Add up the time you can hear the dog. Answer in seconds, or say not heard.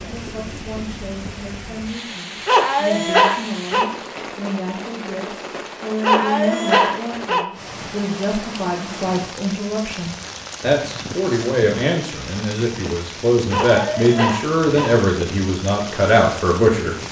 4 s.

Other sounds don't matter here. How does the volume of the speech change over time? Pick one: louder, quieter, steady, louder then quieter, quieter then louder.
louder.